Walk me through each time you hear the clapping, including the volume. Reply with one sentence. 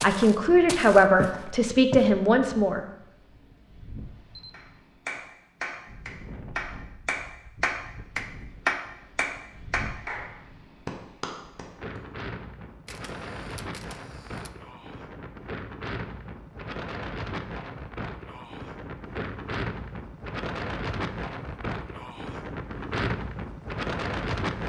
The clapping can be heard from 4.5 to 12.0 s, getting louder then quieter.